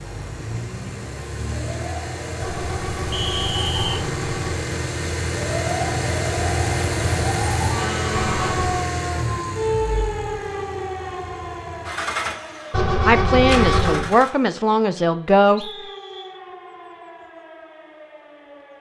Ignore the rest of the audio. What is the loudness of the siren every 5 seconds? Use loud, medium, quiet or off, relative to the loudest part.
medium, loud, medium, quiet.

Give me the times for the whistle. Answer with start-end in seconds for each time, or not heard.
3.1-4.0, 14.9-16.4.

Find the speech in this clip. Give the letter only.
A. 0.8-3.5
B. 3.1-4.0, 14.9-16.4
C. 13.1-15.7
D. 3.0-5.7
C.